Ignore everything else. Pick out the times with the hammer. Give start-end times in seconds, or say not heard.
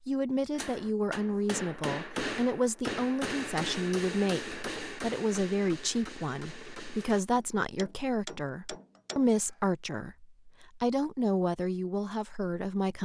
0.6-9.6.